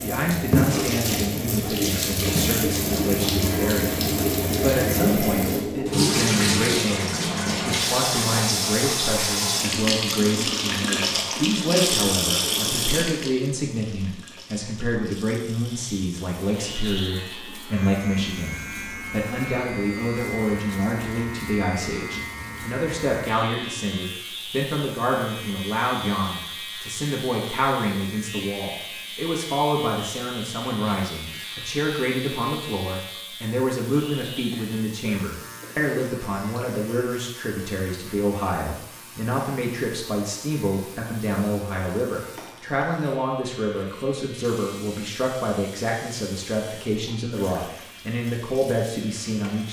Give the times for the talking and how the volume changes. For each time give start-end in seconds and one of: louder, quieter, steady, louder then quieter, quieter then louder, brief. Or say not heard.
0.0-49.6 steady.